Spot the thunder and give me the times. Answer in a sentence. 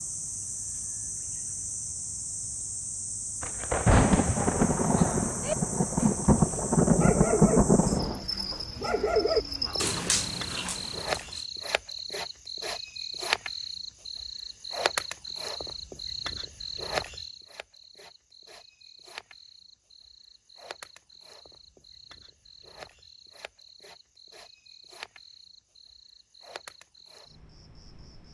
The thunder can be heard from 3.4 to 8.2 s.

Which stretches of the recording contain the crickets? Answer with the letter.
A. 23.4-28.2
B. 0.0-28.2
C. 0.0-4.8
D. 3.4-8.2
B.